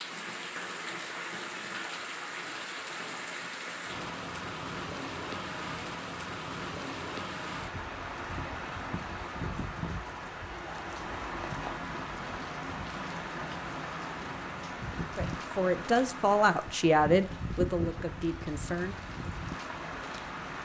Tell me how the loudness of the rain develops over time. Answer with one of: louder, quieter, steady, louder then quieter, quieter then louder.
steady.